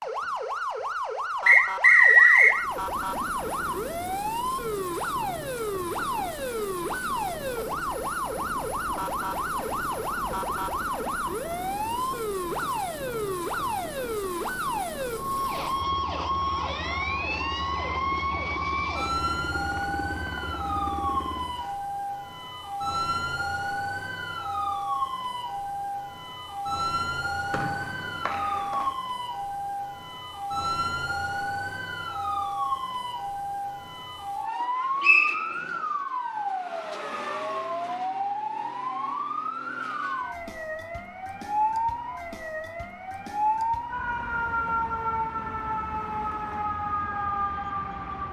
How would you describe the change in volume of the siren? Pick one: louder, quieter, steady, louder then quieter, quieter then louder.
steady.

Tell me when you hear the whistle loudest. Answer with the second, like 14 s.
2 s.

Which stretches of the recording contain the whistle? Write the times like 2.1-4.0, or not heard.
1.4-2.5, 27.5-28.9, 35.0-35.5.